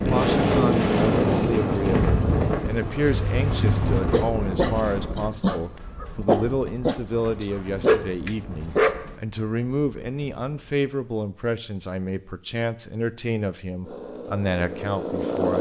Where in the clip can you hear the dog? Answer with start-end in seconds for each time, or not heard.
3.0-9.1.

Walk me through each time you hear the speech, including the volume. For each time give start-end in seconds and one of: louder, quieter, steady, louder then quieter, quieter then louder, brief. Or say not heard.
0.1-15.5 steady.